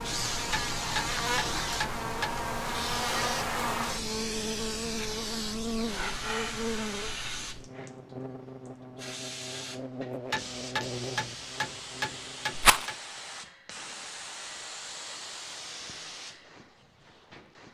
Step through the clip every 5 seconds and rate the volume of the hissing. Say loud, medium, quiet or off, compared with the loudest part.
loud, loud, medium, medium.